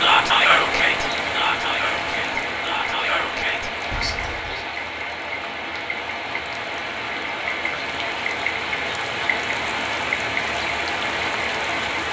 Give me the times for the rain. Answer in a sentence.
You can hear the rain from 0.0 to 12.0 s.